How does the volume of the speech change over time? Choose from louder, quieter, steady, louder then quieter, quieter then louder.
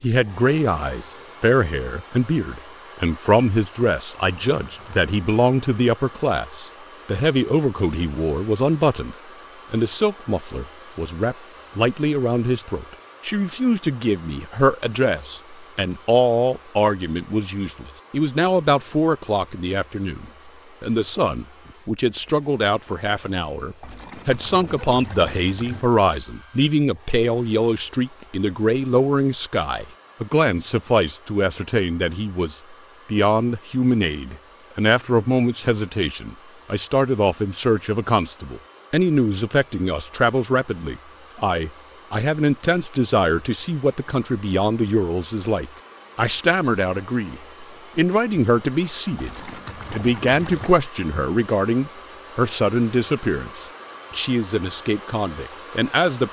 steady.